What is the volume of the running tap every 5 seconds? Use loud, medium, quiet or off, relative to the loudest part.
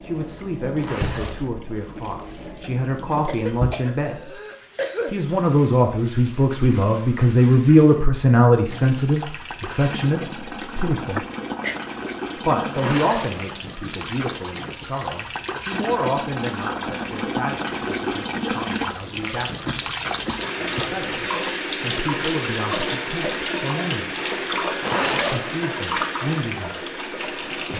medium, quiet, medium, loud, loud, loud.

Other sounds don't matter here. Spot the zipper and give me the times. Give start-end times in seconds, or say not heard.
0.8-2.5, 12.7-14.1, 24.8-25.7.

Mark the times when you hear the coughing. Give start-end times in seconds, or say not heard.
3.1-5.1, 11.2-11.8, 19.6-21.1.